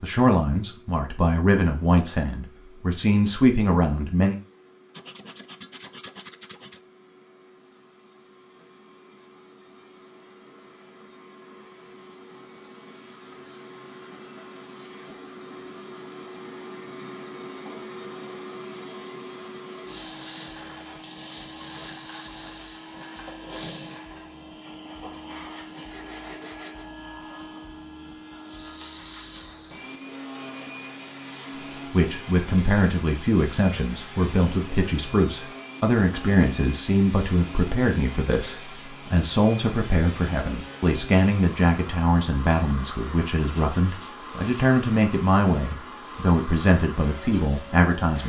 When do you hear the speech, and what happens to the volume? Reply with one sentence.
The speech can be heard from 0.0 to 4.3 s, getting louder; and from 31.9 to 48.2 s, at a steady volume.